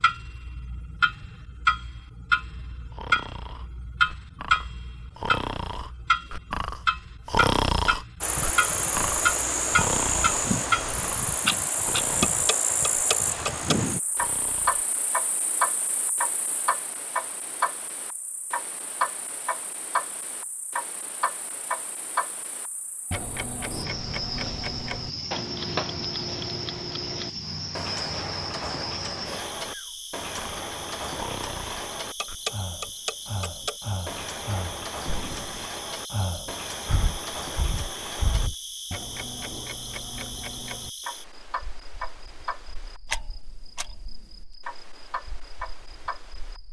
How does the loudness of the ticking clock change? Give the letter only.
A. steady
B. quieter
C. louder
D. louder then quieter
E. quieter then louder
B.